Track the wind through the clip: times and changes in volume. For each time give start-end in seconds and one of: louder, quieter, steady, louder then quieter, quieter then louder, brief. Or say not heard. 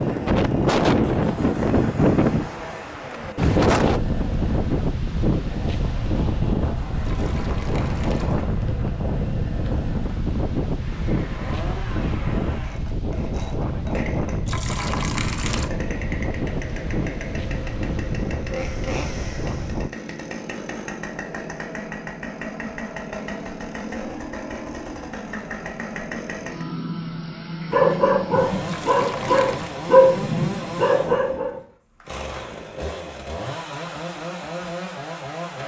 0.0-19.9 quieter.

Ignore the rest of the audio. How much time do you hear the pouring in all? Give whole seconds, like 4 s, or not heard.
4 s.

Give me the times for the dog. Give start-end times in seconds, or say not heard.
26.4-31.6.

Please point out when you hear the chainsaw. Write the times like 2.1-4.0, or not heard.
0.0-35.6.